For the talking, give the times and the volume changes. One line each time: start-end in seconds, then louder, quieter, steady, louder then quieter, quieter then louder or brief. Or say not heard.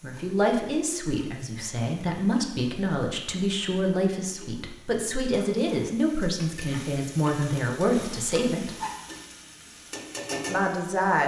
0.0-8.8 steady
10.4-11.2 brief.